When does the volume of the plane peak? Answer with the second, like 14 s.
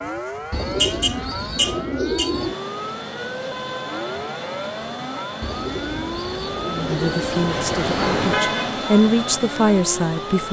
8 s.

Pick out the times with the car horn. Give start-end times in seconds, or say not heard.
0.1-2.3, 7.5-8.8.